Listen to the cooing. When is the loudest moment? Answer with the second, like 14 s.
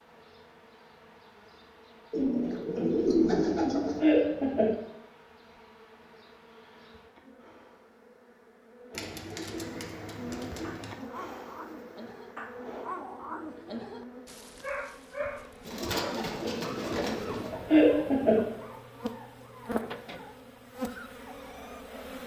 3 s.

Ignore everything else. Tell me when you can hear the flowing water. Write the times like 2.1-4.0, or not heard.
not heard.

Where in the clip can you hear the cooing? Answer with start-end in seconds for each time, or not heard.
2.1-4.0, 8.9-10.9, 15.7-17.5.